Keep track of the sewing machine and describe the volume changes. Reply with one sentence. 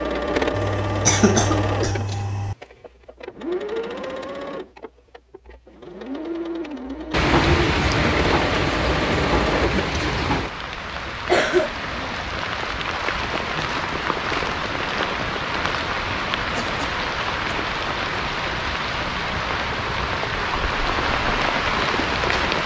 The loudness of the sewing machine goes down, then up.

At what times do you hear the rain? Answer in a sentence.
The rain can be heard from 7.1 to 22.6 s.